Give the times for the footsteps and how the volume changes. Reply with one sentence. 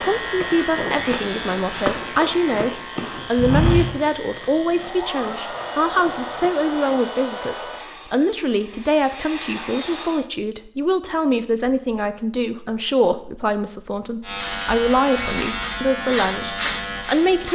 You can hear the footsteps from 0.3 to 6.5 s, getting louder then quieter.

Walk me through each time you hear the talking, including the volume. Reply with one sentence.
You can hear the talking from 0.0 to 17.5 s, at a steady volume.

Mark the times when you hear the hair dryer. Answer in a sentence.
The hair dryer can be heard from 4.8 to 10.3 s.